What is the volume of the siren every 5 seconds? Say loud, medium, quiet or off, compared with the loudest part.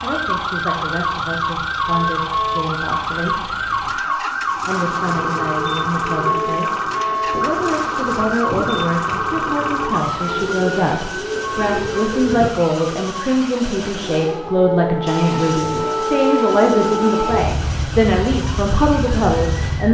loud, loud, medium, loud.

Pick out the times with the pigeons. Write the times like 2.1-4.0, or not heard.
5.0-12.5.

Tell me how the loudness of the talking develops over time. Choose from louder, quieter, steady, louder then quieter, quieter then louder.
louder.